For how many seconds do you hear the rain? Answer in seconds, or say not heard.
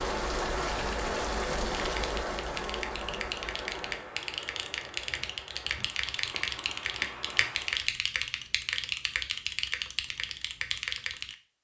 8 s.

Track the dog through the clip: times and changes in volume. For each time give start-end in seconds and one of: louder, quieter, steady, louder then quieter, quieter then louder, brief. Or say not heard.
not heard.